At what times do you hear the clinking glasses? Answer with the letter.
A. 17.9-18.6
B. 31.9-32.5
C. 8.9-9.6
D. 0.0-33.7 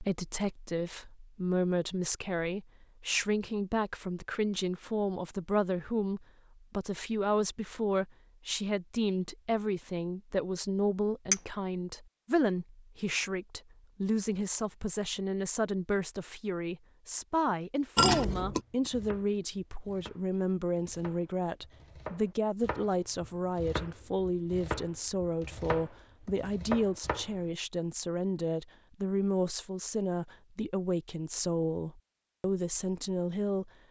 A.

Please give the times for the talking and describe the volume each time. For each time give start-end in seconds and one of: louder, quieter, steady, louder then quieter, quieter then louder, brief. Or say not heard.
0.0-33.7 steady.